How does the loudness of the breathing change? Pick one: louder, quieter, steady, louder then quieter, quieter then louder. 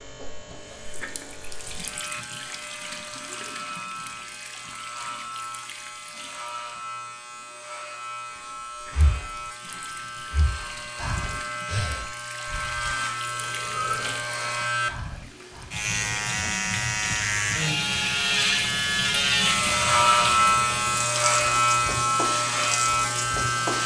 louder then quieter.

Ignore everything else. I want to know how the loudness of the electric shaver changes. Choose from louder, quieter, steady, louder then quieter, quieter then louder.
louder.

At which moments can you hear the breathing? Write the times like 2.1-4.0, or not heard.
8.8-15.8.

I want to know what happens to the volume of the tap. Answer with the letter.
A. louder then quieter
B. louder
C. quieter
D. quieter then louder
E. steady
D.